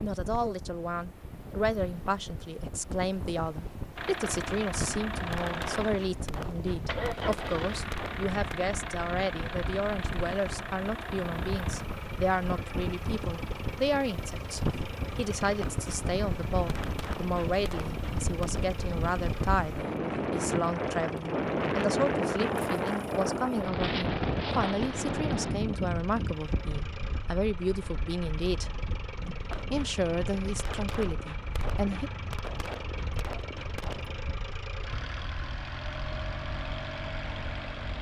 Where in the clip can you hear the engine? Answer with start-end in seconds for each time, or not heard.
4.0-37.9.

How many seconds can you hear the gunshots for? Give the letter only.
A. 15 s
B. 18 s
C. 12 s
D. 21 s
C.